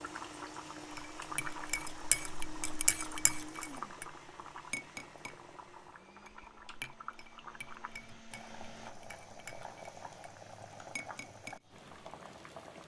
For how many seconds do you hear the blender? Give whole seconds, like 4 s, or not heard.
9 s.